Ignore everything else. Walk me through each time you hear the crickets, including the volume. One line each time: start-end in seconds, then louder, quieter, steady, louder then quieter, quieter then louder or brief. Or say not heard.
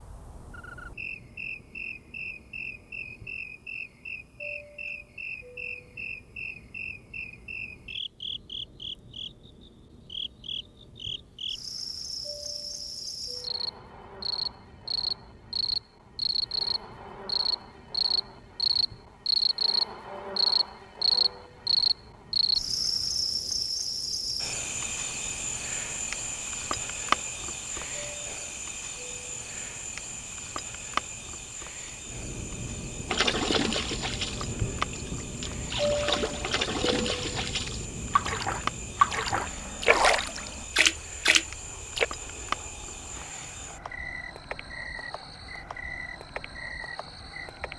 0.0-47.7 louder then quieter.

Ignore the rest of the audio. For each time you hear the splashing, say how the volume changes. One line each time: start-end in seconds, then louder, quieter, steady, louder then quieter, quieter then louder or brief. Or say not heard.
33.0-42.0 louder.